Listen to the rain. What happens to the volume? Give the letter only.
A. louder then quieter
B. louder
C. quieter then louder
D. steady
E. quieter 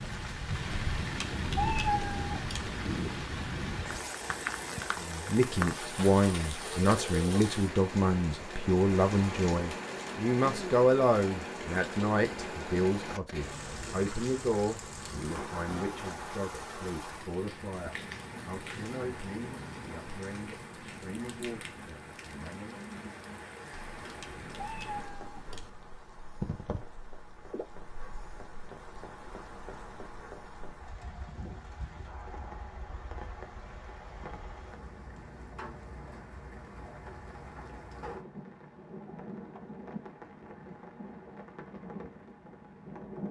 E.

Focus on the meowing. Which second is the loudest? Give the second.
2 s.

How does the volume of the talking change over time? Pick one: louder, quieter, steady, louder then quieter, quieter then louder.
quieter.